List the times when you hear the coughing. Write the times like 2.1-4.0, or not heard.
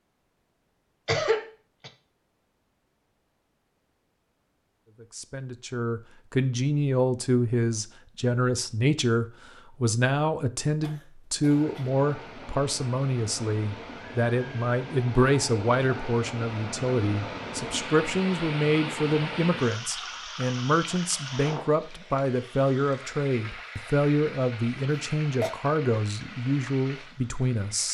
1.1-1.9, 10.8-11.9, 24.9-25.5.